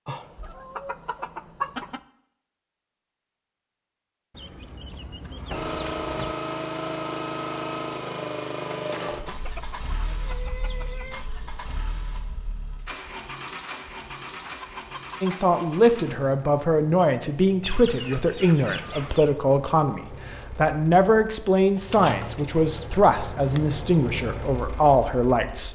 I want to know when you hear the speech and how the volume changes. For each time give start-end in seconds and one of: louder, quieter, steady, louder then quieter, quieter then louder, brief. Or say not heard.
15.2-25.7 steady.